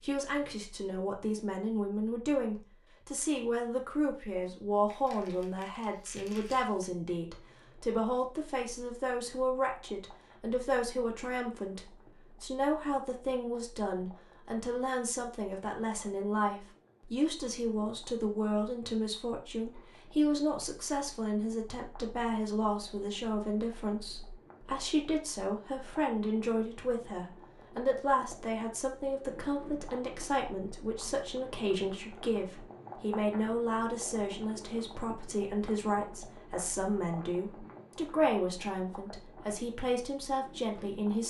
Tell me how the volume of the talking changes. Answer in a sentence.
The volume of the talking stays about the same.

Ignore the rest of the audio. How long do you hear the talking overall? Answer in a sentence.
You can hear the talking for 41 seconds altogether.